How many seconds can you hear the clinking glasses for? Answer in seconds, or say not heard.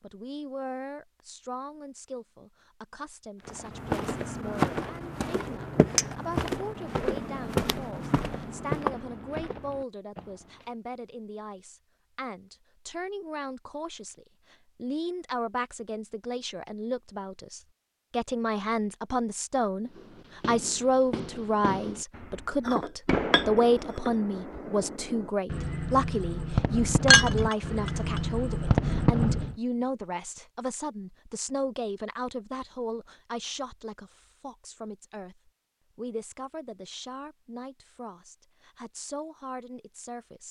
3 s.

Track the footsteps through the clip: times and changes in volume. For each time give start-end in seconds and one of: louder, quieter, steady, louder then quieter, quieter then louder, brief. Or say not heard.
3.5-10.7 quieter.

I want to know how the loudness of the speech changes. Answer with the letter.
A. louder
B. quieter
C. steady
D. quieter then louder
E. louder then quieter
E.